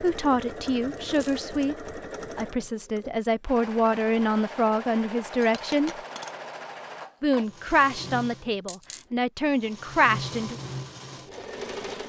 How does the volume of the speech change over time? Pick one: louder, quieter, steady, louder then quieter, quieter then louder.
steady.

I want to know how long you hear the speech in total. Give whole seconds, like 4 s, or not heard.
9 s.